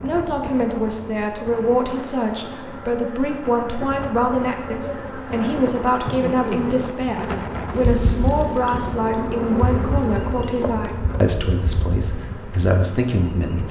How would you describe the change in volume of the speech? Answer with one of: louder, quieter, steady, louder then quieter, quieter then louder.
steady.